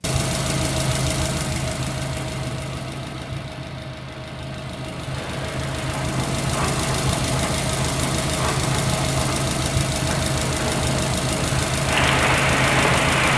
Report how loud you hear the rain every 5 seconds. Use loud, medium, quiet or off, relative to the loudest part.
off, medium, loud.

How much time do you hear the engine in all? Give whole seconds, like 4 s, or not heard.
13 s.